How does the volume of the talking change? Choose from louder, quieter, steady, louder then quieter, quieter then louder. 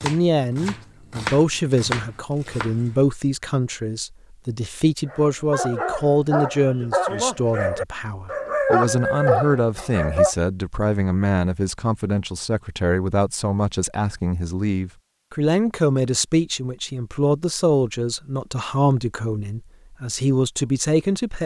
steady.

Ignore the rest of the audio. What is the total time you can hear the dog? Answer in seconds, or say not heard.
5 s.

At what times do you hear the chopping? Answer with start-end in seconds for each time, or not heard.
0.0-3.0.